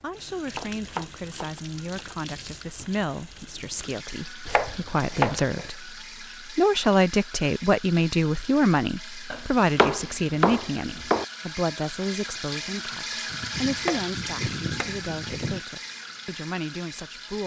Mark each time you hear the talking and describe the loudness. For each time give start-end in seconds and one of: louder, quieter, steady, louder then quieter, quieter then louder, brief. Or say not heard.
0.0-17.4 louder then quieter.